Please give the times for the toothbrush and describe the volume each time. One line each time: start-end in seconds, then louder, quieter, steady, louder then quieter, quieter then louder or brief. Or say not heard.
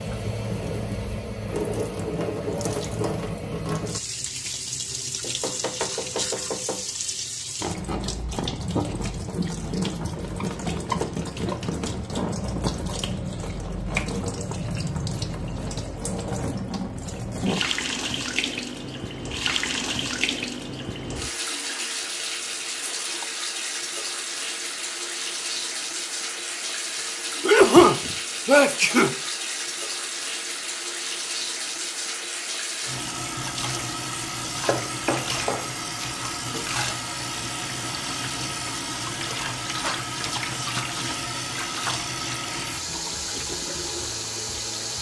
not heard.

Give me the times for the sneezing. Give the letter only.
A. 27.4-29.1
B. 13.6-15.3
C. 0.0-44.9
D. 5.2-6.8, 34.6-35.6
A.